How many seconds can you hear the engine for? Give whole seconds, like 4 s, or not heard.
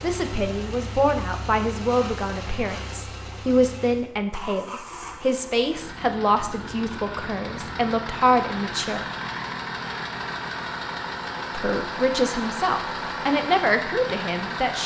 15 s.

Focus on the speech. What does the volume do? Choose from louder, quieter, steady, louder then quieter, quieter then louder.
steady.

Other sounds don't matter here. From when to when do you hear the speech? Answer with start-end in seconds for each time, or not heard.
0.0-9.1, 11.5-14.8.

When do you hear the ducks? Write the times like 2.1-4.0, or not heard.
not heard.